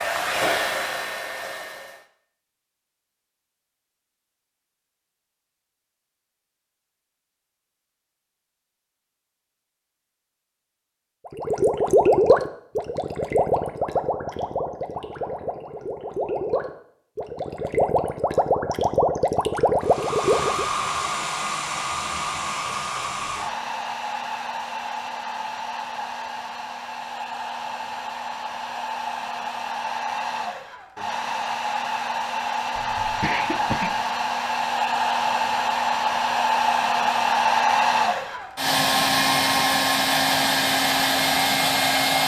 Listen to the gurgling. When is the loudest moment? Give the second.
12 s.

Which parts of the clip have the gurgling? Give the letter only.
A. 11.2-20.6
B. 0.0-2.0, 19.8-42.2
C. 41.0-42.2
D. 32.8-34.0
A.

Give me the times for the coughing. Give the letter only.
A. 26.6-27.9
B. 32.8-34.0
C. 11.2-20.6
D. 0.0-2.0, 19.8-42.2
B.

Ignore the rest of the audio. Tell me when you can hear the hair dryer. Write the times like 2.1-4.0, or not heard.
0.0-2.0, 19.8-42.2.